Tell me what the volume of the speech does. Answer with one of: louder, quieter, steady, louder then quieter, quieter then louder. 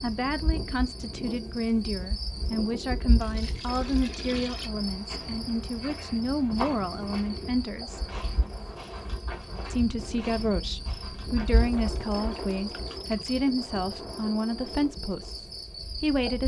steady.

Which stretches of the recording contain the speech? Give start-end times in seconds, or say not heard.
0.0-8.0, 9.7-16.4.